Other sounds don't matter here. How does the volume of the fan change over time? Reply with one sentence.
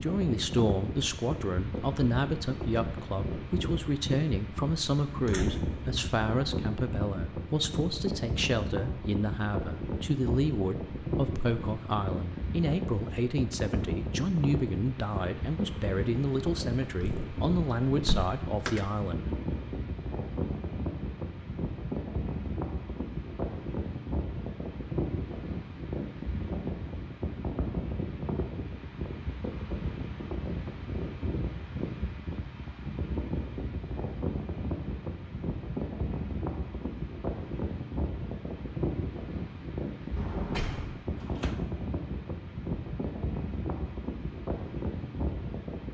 The volume of the fan stays about the same.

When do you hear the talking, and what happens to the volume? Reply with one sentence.
The talking can be heard from 0.0 to 19.3 s, at a steady volume.